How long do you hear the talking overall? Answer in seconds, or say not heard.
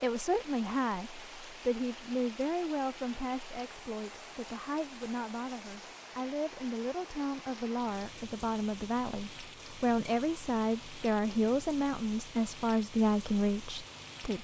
14 s.